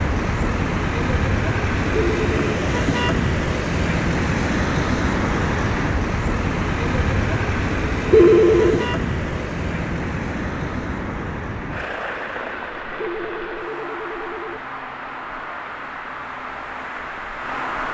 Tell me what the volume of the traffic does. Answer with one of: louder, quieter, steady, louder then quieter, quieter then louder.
quieter.